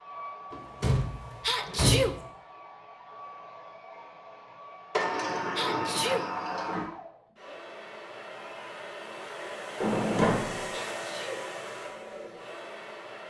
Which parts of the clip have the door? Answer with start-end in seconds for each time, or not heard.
0.5-2.2, 5.0-6.8, 9.8-10.7.